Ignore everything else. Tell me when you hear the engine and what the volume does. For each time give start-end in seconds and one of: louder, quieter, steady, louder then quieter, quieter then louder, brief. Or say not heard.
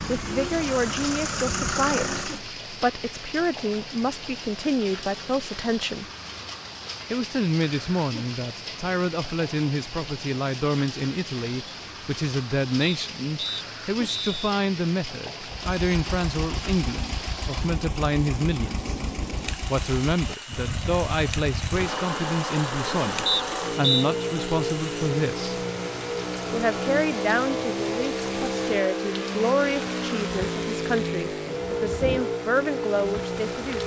0.0-2.5 brief
15.4-33.8 louder.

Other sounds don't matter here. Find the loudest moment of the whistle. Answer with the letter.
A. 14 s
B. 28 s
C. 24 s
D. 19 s
C.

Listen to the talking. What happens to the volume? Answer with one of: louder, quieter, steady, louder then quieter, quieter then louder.
steady.